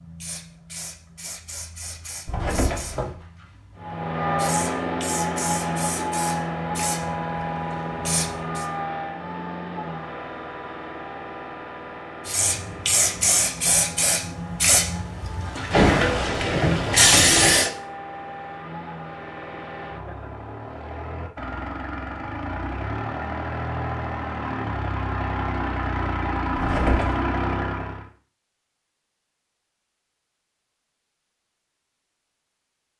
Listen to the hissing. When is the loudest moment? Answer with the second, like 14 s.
17 s.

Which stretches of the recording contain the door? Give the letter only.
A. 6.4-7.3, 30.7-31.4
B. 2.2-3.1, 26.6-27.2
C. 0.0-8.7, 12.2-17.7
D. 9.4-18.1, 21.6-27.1
B.